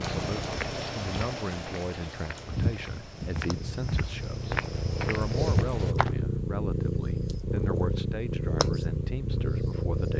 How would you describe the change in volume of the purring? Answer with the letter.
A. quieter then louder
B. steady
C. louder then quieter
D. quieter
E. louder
E.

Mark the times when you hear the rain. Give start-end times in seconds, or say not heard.
0.0-6.0.